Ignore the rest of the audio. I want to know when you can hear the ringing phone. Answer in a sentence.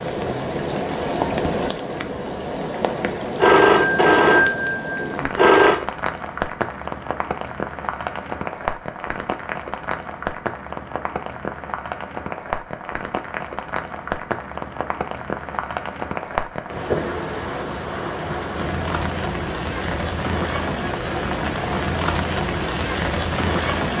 The ringing phone can be heard from 3.4 to 5.8 s.